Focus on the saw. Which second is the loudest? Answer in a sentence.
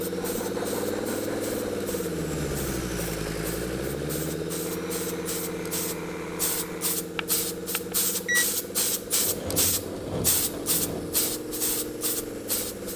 The loudest moment of the saw is at 10 seconds.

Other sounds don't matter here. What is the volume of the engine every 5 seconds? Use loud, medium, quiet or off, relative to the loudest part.
loud, medium, medium.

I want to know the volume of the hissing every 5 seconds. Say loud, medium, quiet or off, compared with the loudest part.
medium, loud, loud.